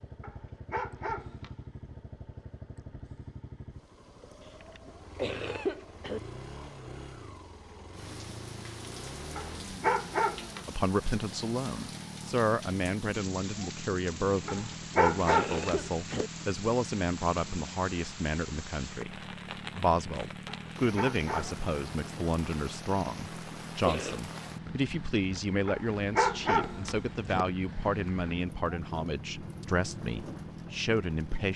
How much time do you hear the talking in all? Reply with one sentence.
You can hear the talking for 21 seconds altogether.